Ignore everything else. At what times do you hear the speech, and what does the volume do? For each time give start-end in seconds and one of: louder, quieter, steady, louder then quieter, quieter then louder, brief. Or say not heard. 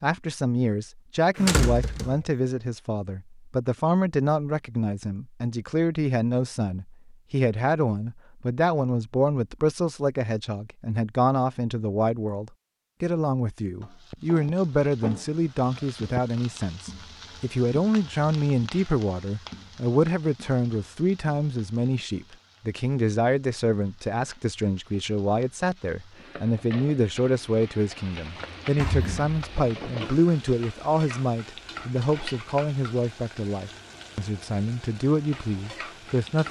0.0-36.4 steady.